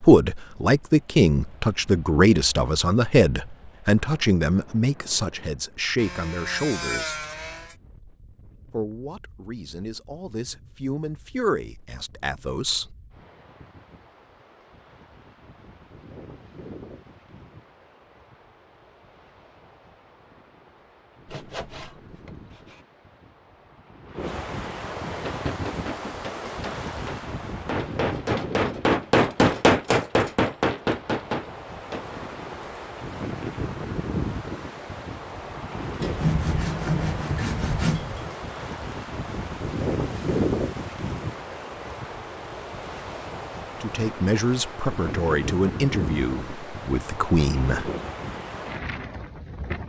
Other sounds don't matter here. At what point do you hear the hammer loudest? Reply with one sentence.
The loudest moment of the hammer is at 30 seconds.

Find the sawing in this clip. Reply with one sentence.
You can hear the sawing from 6.0 to 7.8 s, from 21.2 to 22.8 s and from 36.0 to 38.4 s.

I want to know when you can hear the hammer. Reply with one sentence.
You can hear the hammer from 25.2 to 32.1 s.